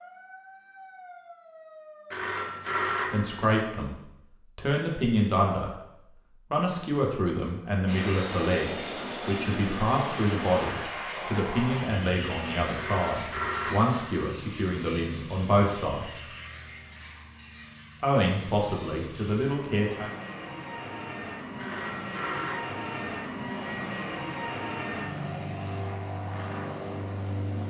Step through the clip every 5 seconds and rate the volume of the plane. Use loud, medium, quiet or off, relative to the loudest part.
off, loud, loud, medium, loud, loud.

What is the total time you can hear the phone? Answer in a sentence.
You can hear the phone for 5 seconds altogether.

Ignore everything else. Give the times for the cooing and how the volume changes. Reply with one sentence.
The cooing can't be heard in this clip.